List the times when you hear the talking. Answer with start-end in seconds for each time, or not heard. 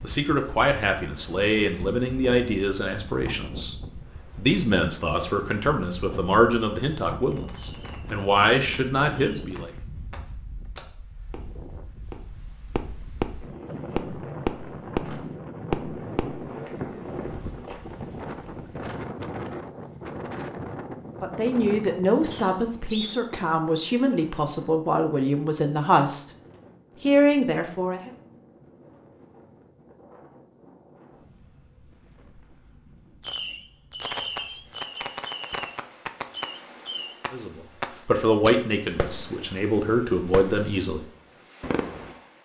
0.0-9.7, 21.2-26.2, 27.0-28.1, 37.3-41.0.